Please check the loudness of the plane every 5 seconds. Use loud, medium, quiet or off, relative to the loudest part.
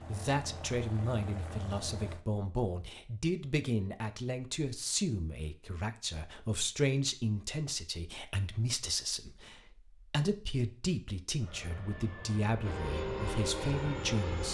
medium, off, loud.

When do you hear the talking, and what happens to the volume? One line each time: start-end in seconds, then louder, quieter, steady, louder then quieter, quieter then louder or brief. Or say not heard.
0.1-14.4 steady.